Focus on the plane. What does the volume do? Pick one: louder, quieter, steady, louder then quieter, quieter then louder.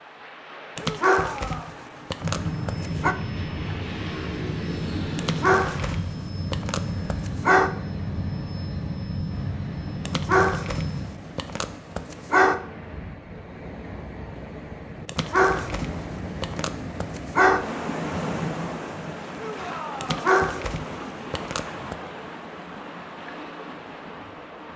steady.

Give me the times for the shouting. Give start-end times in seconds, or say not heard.
0.8-1.8, 19.3-20.2.